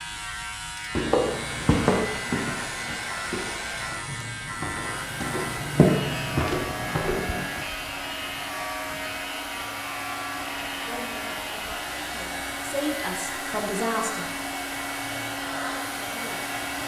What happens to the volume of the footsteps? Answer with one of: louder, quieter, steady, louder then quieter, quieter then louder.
quieter then louder.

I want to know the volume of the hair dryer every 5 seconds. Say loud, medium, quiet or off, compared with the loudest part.
medium, medium, loud, loud.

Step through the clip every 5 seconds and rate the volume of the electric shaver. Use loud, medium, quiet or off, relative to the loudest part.
loud, loud, loud, medium.